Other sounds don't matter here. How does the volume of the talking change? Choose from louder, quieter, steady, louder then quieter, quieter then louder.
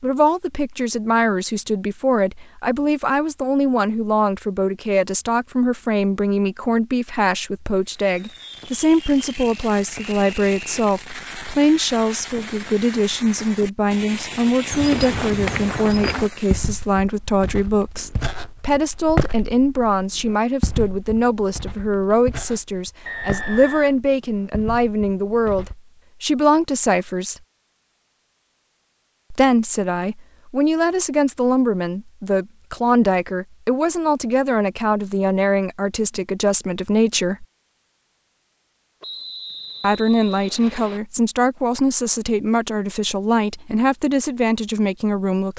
steady.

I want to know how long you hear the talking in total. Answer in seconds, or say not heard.
41 s.